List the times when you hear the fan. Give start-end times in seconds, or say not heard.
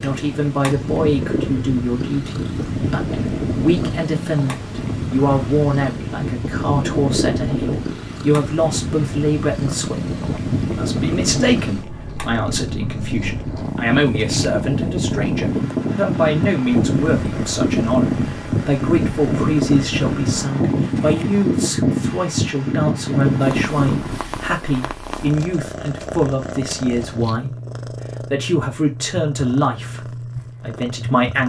0.0-24.2.